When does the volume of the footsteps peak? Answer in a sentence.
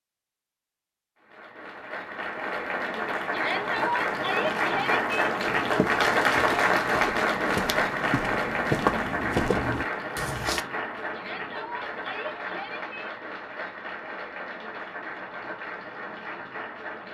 The loudest moment of the footsteps is at 9 seconds.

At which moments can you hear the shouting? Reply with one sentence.
You can hear the shouting from 3.3 to 5.2 s and from 11.1 to 13.1 s.